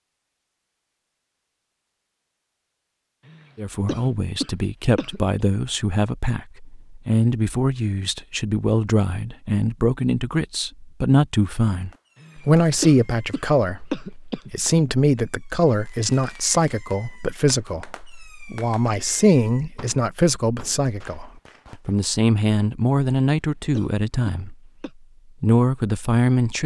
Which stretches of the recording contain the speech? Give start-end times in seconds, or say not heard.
3.5-24.6, 25.4-26.6.